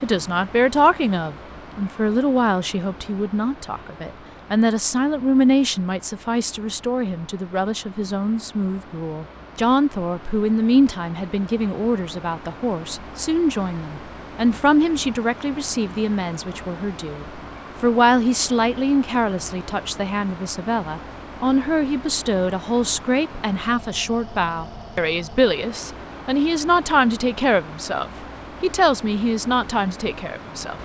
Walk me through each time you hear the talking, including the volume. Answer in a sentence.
The talking can be heard from 0.0 to 30.8 s, at a steady volume.